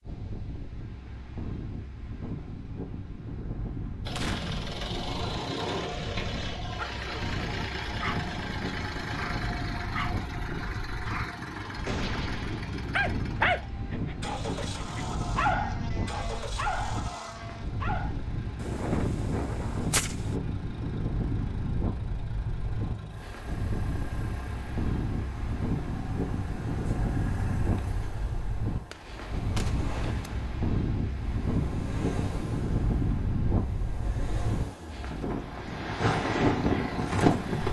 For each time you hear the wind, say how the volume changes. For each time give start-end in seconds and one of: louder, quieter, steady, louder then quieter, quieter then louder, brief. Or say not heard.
0.0-37.6 louder.